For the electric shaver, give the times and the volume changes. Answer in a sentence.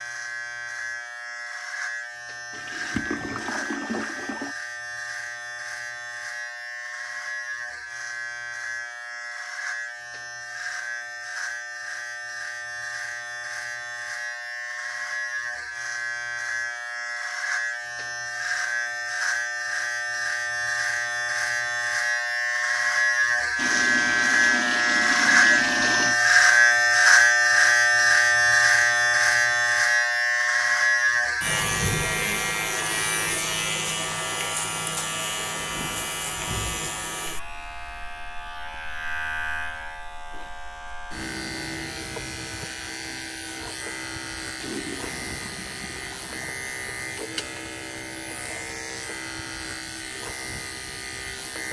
The electric shaver can be heard from 0.0 to 51.6 s, getting louder then quieter.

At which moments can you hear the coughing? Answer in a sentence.
You can't hear the coughing here.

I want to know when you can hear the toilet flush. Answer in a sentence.
The toilet flush can be heard from 2.5 to 4.5 s, from 23.6 to 26.2 s and from 44.6 to 46.5 s.